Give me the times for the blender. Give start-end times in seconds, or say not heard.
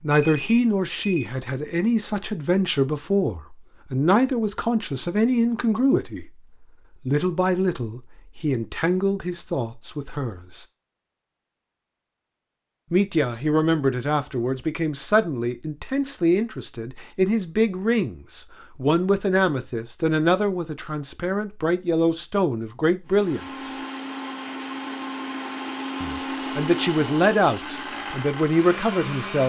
23.1-29.4.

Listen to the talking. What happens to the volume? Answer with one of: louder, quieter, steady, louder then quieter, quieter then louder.
steady.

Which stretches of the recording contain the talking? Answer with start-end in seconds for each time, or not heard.
0.0-6.3, 7.0-10.7, 12.9-23.8, 26.0-29.4.